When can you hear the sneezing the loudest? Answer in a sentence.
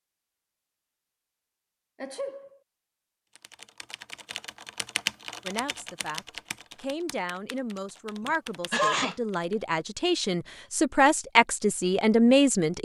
The volume of the sneezing peaks at 9 seconds.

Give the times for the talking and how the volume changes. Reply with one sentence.
The talking can be heard from 5.5 to 12.7 s, getting louder.